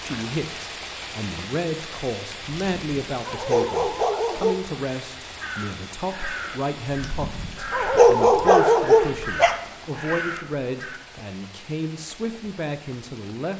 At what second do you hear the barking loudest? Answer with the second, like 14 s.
8 s.